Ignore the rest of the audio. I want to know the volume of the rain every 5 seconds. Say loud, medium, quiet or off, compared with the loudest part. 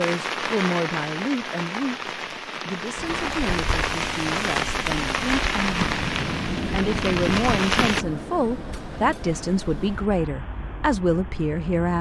loud, loud, off.